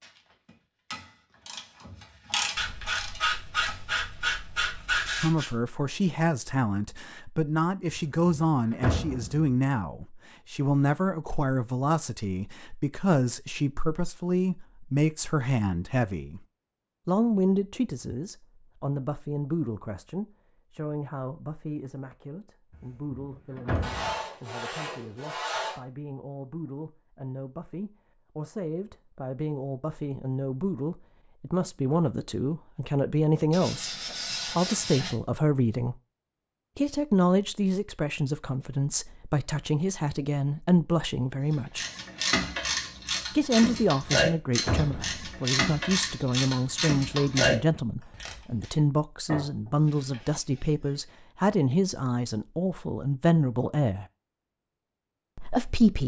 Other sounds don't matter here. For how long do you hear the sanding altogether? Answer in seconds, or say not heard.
8 s.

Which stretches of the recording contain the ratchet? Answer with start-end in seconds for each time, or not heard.
0.0-4.0, 41.8-48.8.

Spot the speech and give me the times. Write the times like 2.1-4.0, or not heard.
5.2-16.4, 17.1-36.0, 36.8-41.9, 43.3-54.0, 55.4-56.0.